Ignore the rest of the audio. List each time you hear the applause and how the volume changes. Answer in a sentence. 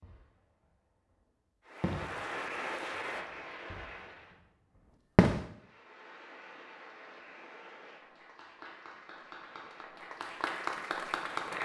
The applause can be heard briefly from 1.6 to 4.3 s; and from 5.5 to 11.5 s, getting louder.